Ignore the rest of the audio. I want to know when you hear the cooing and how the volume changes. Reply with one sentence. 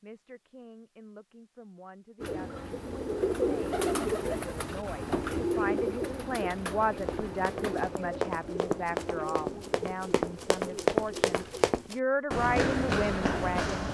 The cooing can be heard from 2.2 to 11.7 s, getting quieter.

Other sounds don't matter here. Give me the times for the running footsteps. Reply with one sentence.
You can hear the running footsteps from 7.0 to 13.8 s.